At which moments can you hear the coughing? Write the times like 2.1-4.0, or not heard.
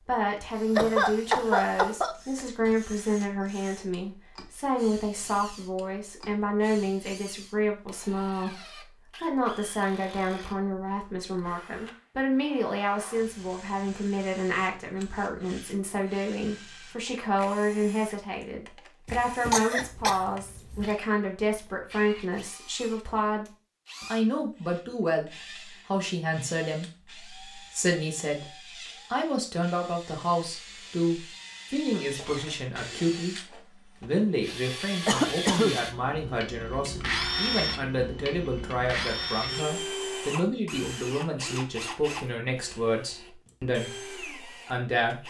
0.8-2.8, 19.1-20.9, 35.0-35.8.